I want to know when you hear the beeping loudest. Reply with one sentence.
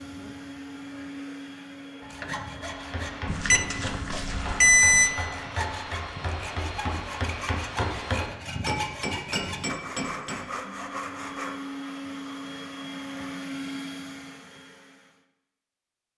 The volume of the beeping peaks at 5 seconds.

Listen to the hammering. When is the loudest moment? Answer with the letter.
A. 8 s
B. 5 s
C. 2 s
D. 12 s
A.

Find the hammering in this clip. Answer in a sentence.
You can hear the hammering from 2.5 to 10.4 s.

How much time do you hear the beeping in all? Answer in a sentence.
You can hear the beeping for 2 seconds altogether.